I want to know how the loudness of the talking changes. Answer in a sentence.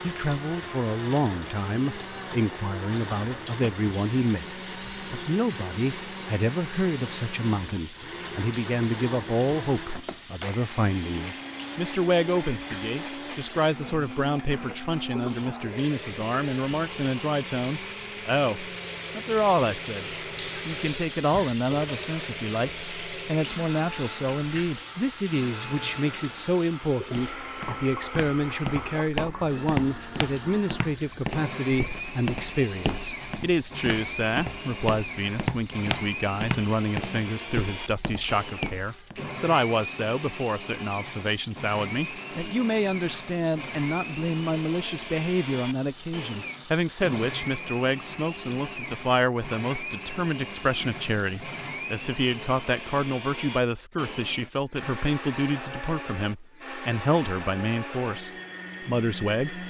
The loudness of the talking stays about the same.